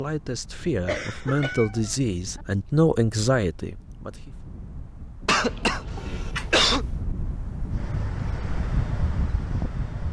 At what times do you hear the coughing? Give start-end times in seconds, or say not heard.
0.8-1.6, 5.2-6.8.